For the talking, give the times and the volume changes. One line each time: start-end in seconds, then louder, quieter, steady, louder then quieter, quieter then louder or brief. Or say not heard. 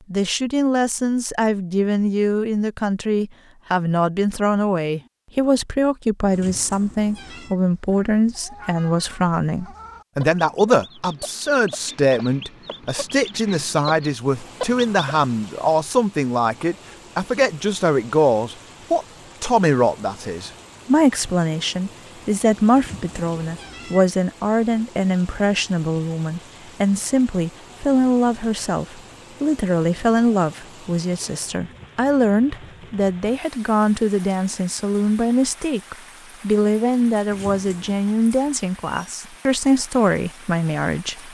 0.1-41.3 steady.